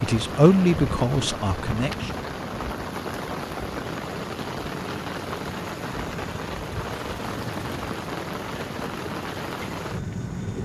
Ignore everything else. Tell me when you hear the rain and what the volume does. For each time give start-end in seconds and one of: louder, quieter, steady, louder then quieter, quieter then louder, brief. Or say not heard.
0.0-10.6 steady.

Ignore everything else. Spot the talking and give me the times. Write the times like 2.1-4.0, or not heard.
0.0-2.1.